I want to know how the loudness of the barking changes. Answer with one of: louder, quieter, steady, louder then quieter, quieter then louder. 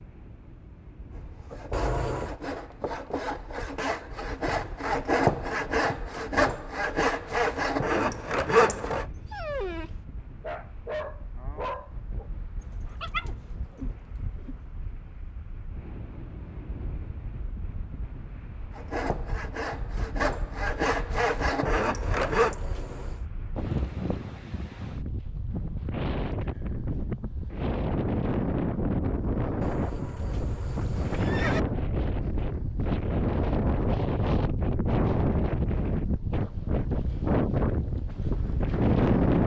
quieter.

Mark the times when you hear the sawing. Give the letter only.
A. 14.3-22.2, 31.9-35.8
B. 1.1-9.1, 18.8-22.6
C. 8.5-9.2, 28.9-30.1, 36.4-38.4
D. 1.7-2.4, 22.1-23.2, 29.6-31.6
B.